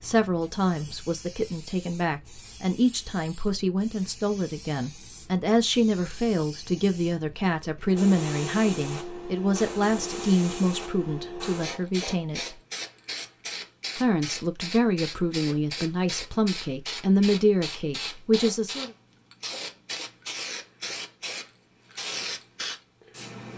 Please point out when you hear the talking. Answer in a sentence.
The talking can be heard from 0.0 to 12.6 s and from 13.9 to 18.9 s.